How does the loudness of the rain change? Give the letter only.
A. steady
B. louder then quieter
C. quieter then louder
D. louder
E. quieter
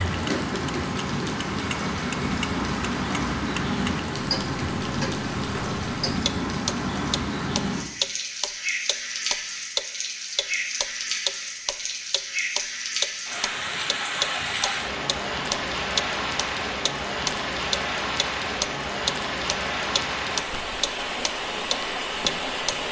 A.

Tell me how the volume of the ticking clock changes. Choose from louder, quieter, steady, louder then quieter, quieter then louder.
louder.